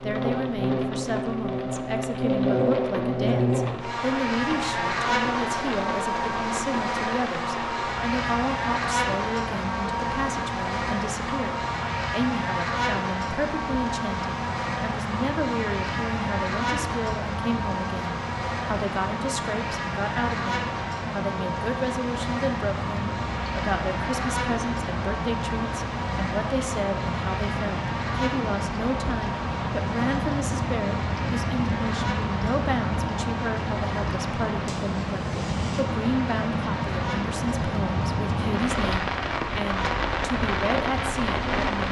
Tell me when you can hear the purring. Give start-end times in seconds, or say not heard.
not heard.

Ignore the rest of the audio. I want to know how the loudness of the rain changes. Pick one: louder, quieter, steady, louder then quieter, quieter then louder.
louder.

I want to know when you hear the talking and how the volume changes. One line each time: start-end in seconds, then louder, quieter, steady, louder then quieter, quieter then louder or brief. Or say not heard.
0.0-41.8 steady.